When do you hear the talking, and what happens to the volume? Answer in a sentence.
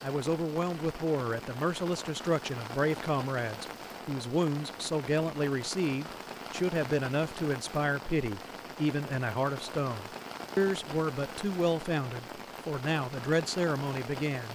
You can hear the talking from 0.0 to 14.5 s, at a steady volume.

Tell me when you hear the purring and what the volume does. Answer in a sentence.
You can't hear the purring here.